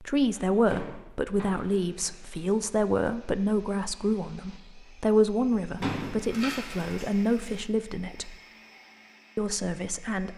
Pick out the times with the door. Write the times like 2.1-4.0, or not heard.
0.7-2.1, 5.8-7.7.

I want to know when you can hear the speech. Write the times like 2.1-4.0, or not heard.
0.0-8.3, 9.3-10.3.